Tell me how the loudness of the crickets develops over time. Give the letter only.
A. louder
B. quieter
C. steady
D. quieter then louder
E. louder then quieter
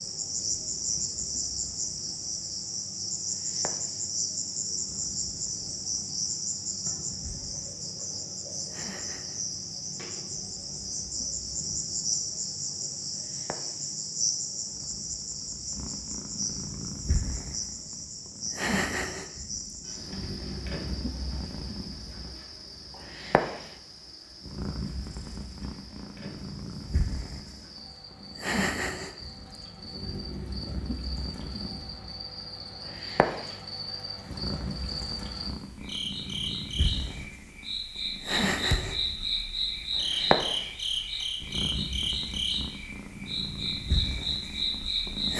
D.